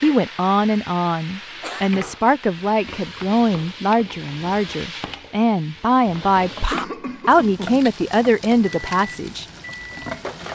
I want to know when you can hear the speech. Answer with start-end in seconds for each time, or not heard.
0.0-9.4.